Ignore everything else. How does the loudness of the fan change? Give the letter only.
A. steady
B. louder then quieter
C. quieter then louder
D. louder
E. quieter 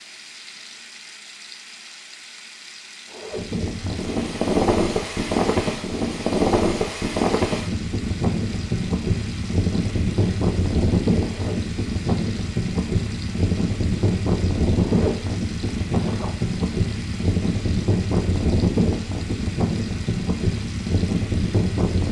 A.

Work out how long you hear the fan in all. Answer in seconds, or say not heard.
19 s.